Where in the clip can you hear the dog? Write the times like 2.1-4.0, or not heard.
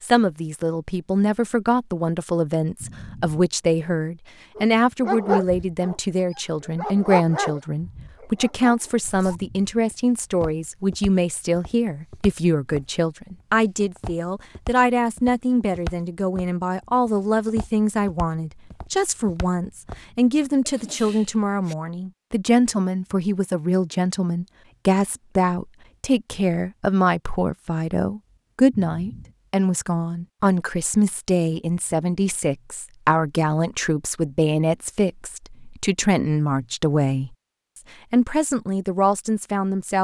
4.5-9.7.